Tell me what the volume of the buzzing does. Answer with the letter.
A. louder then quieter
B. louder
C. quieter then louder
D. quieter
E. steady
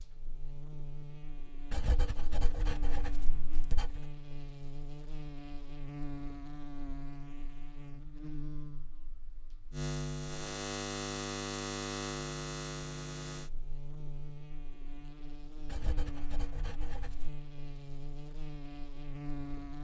A.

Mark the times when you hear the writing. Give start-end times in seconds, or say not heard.
1.7-4.0, 15.7-17.4.